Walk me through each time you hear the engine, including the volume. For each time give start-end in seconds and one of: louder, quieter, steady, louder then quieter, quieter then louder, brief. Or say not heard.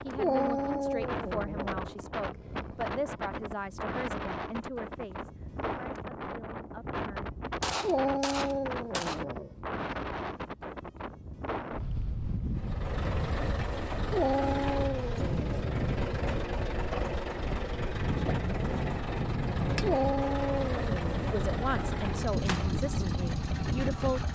12.5-24.3 steady.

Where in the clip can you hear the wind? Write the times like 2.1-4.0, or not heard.
0.0-24.3.